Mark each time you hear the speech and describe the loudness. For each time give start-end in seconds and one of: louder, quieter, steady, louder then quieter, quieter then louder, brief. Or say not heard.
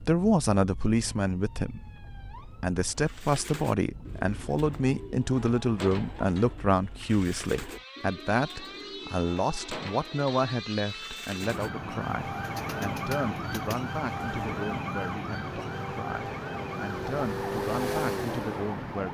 0.0-19.0 quieter.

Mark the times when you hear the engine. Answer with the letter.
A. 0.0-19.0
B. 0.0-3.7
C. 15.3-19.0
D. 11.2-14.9
C.